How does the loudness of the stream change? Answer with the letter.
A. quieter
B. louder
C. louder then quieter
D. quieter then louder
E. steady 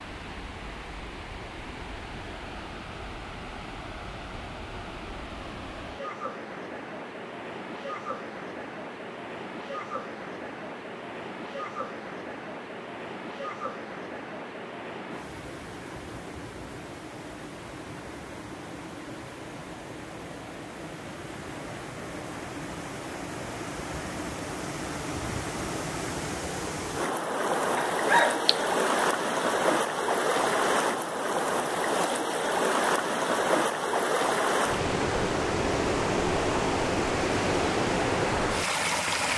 B.